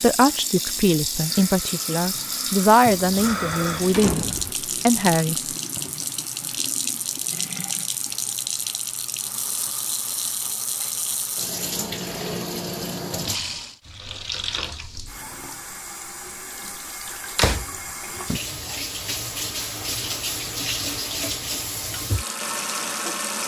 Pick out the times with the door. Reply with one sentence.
You can hear the door from 2.9 to 4.5 s and from 17.4 to 18.8 s.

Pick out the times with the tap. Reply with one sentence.
You can hear the tap from 0.0 to 23.4 s.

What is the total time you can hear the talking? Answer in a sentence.
You can hear the talking for 5 seconds altogether.